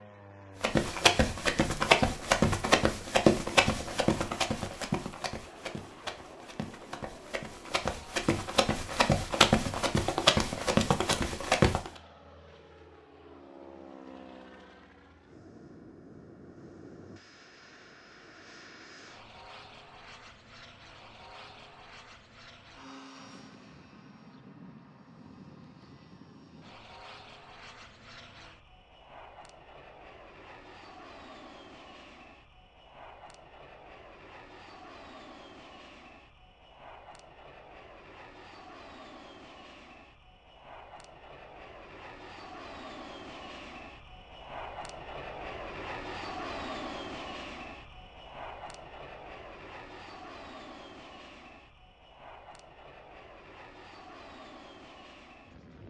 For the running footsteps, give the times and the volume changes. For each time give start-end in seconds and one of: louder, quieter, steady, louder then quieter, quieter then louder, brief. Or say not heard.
0.6-11.9 quieter then louder.